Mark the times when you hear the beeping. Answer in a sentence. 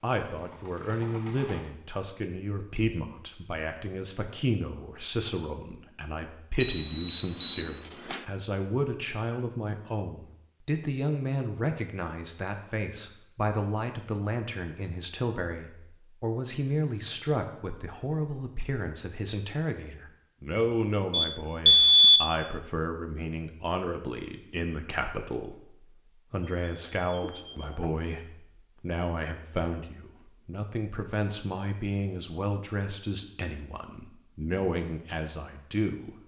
You can hear the beeping from 6.6 to 8.2 s, from 21.1 to 22.2 s and from 26.6 to 27.9 s.